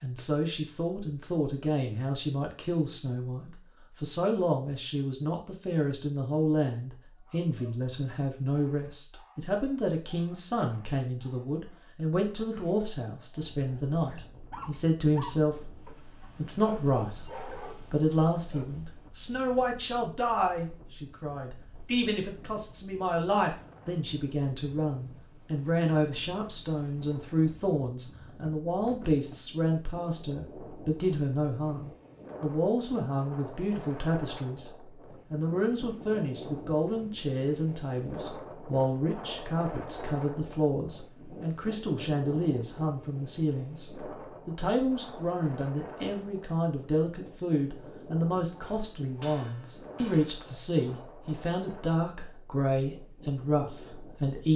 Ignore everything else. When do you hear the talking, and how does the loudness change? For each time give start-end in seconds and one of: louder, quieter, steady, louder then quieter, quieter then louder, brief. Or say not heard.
0.0-15.7 steady
16.4-34.7 steady
35.3-54.5 steady.